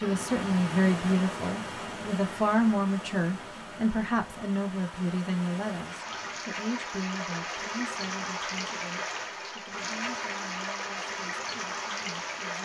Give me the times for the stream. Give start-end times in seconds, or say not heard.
0.0-12.6.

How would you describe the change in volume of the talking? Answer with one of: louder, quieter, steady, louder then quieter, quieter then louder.
quieter.